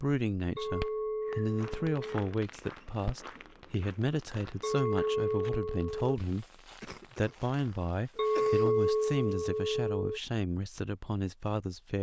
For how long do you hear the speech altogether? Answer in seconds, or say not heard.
11 s.